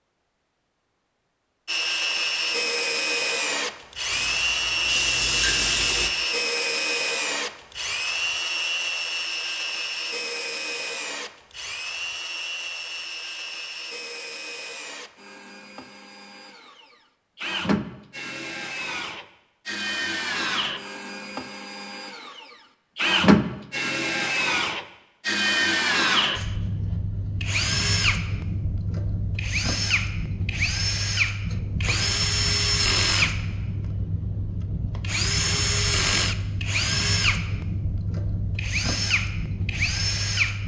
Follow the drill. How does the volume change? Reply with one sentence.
The volume of the drill goes down, then up.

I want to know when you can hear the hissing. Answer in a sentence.
You can hear the hissing from 4.1 to 6.1 s.